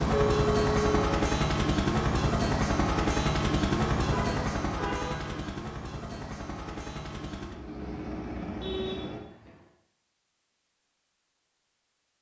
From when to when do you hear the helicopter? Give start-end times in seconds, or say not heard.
0.0-9.2.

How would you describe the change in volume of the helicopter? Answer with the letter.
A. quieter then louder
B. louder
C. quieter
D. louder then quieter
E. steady
C.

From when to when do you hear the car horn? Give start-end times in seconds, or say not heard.
0.1-1.2, 4.1-5.5, 8.6-9.7.